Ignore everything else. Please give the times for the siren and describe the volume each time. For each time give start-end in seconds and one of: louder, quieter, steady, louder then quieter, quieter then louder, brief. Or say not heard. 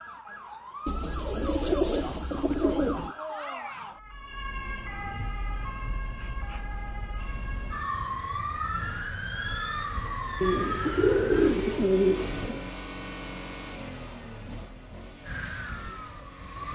0.0-11.6 louder
15.2-16.7 brief.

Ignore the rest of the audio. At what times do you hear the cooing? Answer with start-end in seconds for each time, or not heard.
0.8-3.1, 10.4-12.6.